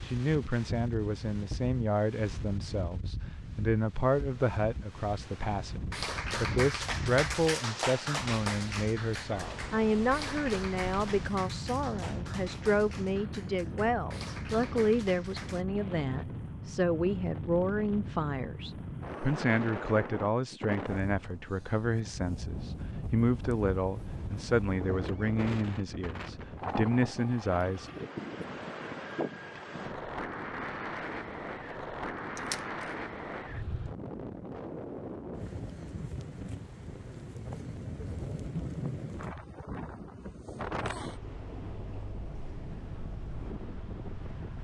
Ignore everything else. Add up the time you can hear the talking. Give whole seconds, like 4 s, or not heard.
28 s.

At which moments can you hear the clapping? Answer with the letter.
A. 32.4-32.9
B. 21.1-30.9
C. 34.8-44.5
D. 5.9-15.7
D.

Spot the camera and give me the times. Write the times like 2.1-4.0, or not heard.
32.4-32.9.